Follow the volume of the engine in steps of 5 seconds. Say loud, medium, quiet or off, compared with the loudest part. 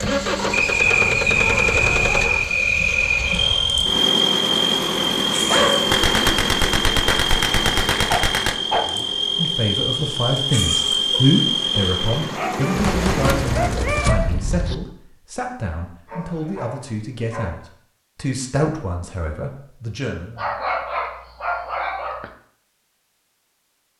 loud, loud, medium, off, off.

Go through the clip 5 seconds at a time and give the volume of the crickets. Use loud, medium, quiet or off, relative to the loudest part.
loud, loud, loud, off, off.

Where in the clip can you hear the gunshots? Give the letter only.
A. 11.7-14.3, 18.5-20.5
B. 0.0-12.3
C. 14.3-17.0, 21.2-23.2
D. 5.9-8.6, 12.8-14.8
D.